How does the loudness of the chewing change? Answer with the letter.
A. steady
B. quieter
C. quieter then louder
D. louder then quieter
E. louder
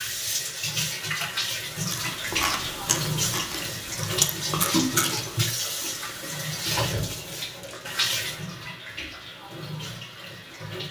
B.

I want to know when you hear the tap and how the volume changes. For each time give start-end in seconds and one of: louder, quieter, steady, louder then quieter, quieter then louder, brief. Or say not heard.
0.0-10.8 quieter.